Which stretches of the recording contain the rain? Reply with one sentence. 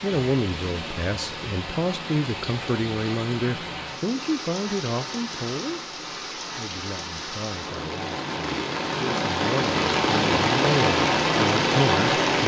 You can hear the rain from 0.0 to 12.4 s.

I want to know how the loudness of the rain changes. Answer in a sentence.
The volume of the rain goes up.